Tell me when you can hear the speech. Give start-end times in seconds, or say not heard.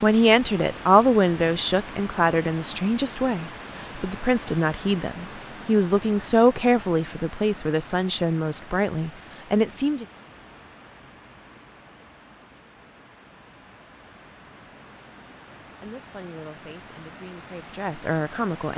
0.0-10.1, 15.8-18.7.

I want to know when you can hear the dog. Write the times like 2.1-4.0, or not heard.
not heard.